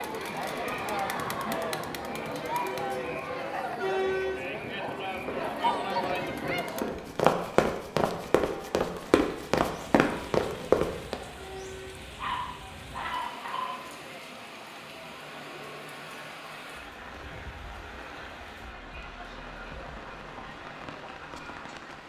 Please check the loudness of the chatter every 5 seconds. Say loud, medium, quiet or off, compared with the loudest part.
loud, loud, quiet, quiet, quiet.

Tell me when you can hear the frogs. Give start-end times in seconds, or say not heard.
not heard.